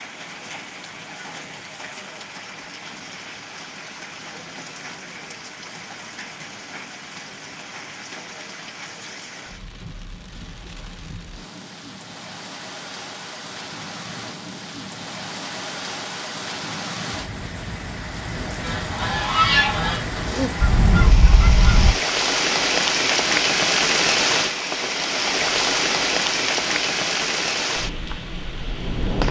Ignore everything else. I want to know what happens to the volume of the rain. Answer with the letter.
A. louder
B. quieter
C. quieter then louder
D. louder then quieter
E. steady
A.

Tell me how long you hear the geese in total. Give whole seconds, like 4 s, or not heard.
3 s.